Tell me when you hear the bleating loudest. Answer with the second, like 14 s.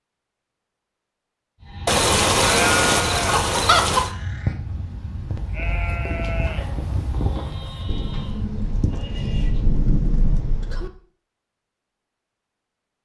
3 s.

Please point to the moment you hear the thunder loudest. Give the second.
10 s.